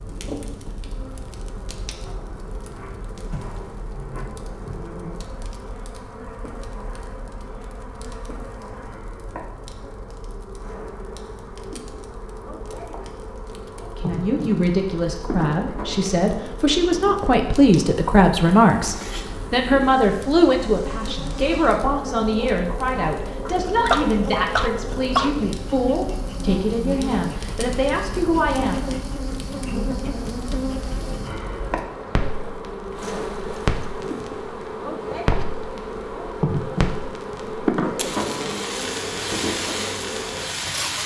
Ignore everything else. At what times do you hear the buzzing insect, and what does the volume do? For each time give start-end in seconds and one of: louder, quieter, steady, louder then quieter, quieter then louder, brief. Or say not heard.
0.0-41.0 louder.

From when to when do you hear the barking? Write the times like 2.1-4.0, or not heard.
23.4-25.4.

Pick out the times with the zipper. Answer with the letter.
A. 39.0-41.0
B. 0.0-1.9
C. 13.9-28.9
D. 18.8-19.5
D.